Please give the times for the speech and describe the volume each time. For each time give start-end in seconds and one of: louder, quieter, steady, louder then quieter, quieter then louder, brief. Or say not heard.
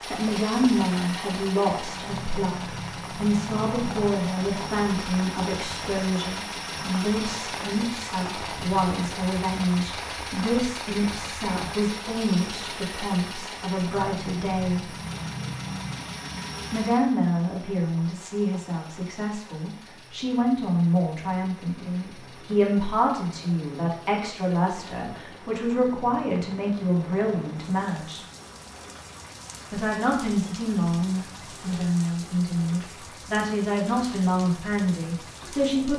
0.0-14.9 steady
16.7-28.2 steady
29.7-35.9 steady.